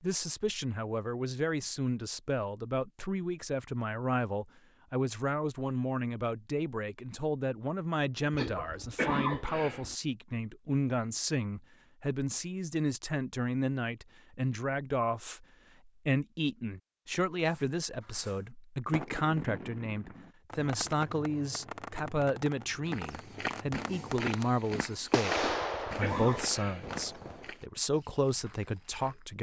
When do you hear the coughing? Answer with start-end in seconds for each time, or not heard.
8.3-9.9, 25.4-27.0.